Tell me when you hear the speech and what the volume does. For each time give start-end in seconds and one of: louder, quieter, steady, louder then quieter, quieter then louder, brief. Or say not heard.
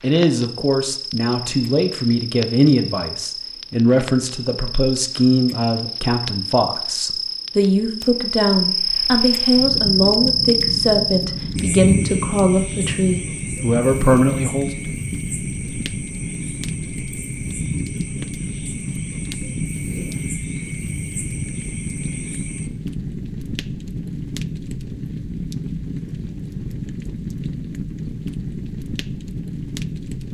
0.0-14.9 steady.